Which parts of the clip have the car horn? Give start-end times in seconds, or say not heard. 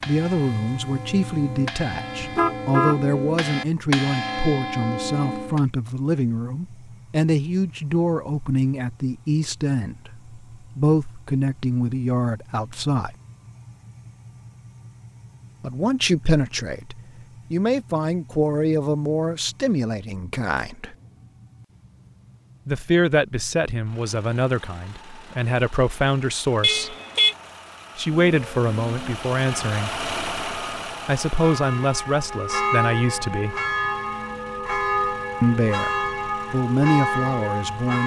2.2-3.0, 26.6-27.4.